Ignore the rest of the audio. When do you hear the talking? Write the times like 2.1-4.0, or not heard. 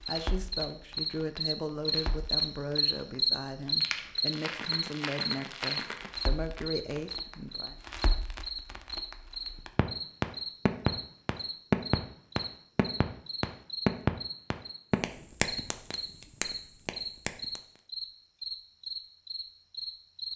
0.0-7.8.